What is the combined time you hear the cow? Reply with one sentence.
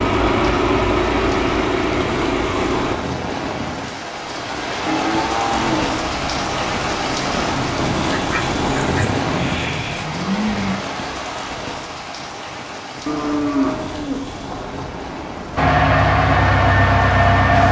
You can hear the cow for 4 seconds altogether.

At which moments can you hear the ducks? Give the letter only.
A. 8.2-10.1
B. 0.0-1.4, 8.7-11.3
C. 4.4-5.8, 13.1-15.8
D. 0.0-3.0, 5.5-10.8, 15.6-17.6
A.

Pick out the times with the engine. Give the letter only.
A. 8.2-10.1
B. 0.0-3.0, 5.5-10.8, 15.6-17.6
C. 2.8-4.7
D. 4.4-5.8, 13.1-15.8
B.